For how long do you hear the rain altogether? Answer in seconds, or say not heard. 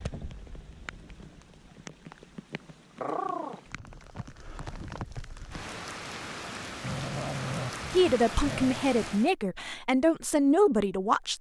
9 s.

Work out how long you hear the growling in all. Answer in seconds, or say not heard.
3 s.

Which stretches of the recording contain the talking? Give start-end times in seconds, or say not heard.
7.9-11.3.